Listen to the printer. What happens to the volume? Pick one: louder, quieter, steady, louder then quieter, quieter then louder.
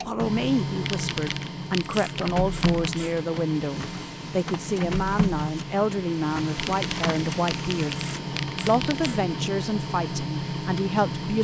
steady.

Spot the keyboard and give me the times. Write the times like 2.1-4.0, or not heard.
0.8-3.0, 6.5-9.2.